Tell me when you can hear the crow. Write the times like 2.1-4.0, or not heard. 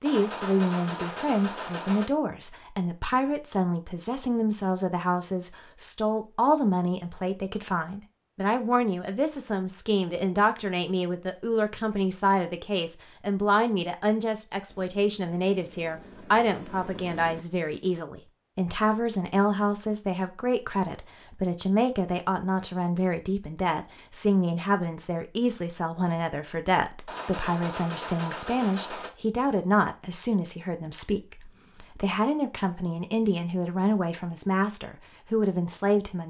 not heard.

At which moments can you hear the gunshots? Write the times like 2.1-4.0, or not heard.
0.1-2.0, 27.1-29.1.